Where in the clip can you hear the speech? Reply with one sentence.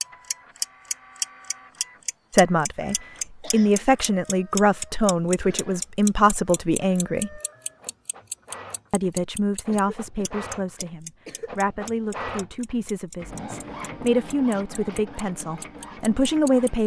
The speech can be heard from 2.3 to 7.4 s and from 8.9 to 16.8 s.